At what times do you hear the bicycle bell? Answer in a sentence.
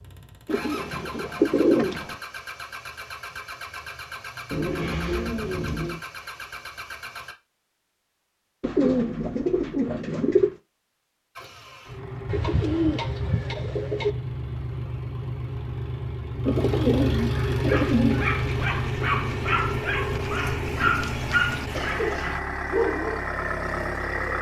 The bicycle bell can't be heard in this clip.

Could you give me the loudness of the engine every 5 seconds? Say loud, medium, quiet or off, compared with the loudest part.
medium, medium, medium, loud, loud.